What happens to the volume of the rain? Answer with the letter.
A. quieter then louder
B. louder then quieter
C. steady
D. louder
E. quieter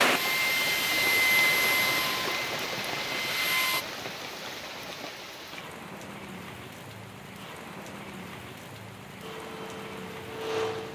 E.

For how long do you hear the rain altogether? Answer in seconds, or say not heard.
11 s.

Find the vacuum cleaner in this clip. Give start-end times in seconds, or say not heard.
0.0-3.9, 9.2-10.8.